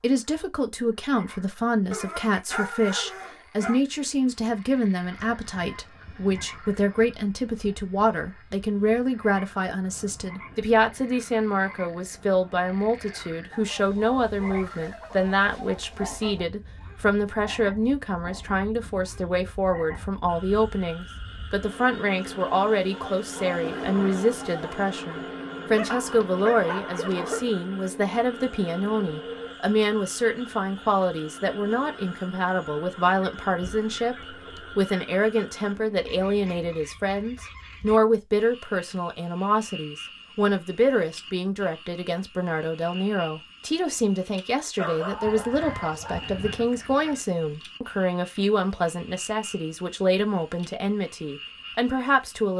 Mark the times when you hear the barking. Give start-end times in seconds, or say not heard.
1.9-3.8, 25.8-27.5, 44.8-46.3.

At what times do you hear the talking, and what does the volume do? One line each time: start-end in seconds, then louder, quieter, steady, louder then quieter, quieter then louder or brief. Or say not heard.
0.0-52.5 steady.